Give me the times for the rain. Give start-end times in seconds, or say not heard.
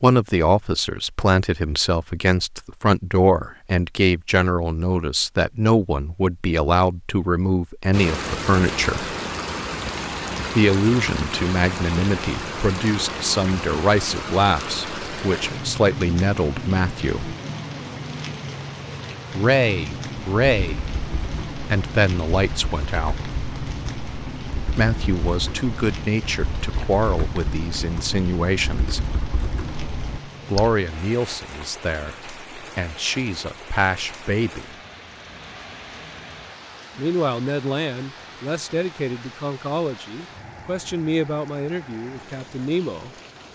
7.9-43.5.